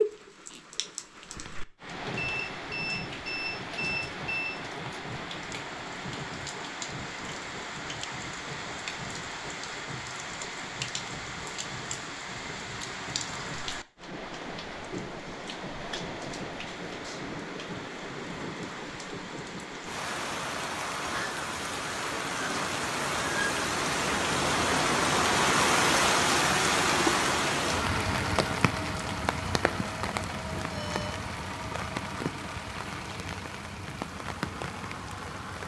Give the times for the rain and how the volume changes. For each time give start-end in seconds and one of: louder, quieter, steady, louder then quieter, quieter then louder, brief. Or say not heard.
0.0-35.6 louder then quieter.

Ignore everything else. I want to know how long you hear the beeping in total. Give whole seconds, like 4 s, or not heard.
3 s.